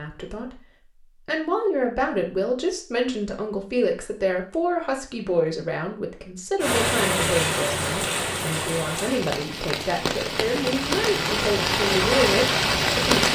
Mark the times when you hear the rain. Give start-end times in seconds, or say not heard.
6.6-13.3.